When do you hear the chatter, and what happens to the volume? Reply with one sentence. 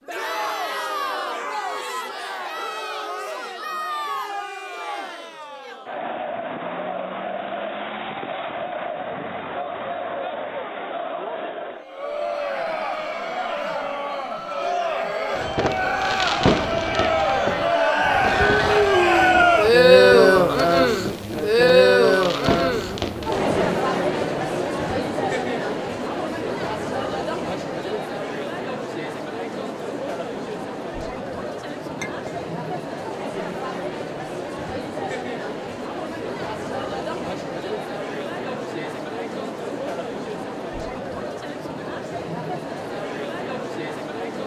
You can hear the chatter from 0.0 to 44.4 s, getting louder then quieter.